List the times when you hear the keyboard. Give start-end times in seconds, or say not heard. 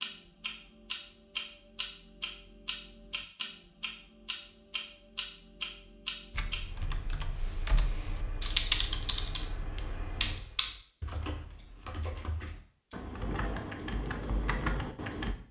6.3-15.3.